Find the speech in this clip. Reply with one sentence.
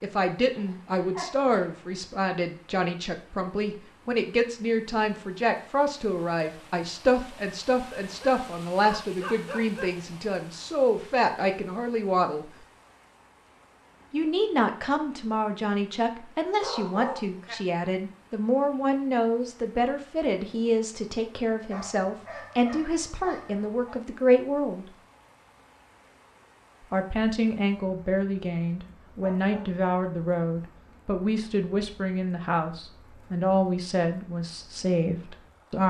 The speech can be heard from 0.0 to 12.5 s, from 14.1 to 24.9 s and from 26.8 to 35.8 s.